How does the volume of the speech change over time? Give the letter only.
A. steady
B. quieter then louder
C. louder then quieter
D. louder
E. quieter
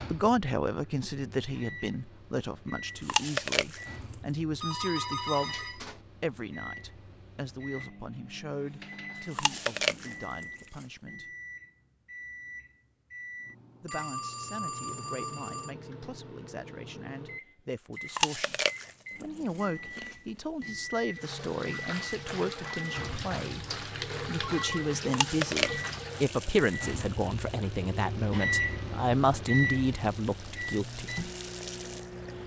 B.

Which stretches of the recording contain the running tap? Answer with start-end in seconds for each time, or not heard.
21.1-32.4.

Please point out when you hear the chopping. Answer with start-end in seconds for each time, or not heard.
not heard.